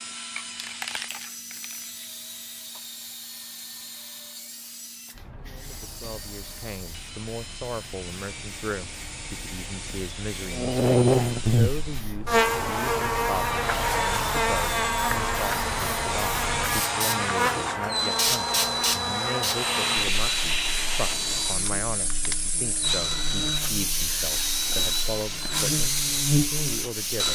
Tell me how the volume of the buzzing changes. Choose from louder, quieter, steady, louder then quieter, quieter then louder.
quieter then louder.